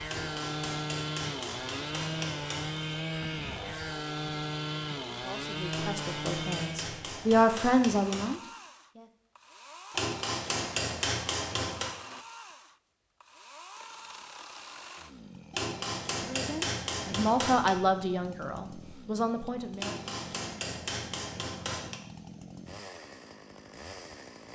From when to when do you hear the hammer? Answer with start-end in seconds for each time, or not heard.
0.1-2.8, 5.7-8.3, 9.9-11.9, 15.5-17.8, 19.8-22.0.